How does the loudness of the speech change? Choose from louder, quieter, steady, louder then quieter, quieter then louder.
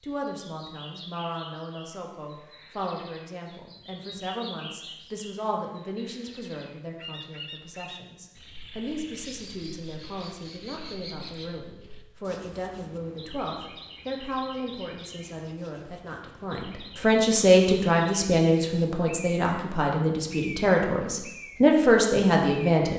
louder.